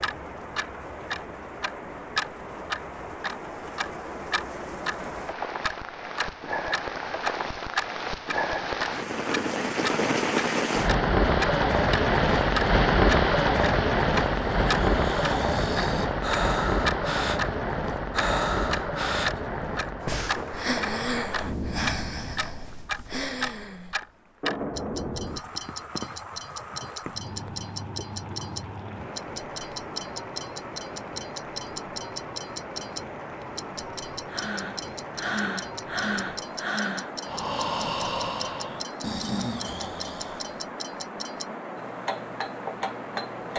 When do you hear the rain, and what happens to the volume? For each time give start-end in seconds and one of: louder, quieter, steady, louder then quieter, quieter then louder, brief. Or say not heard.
0.0-43.5 louder then quieter.